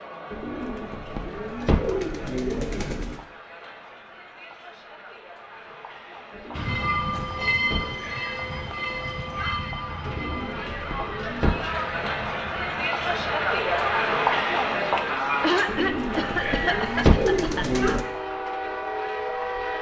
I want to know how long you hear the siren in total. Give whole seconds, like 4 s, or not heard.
not heard.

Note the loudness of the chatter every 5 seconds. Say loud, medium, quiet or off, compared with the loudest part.
quiet, quiet, loud, medium.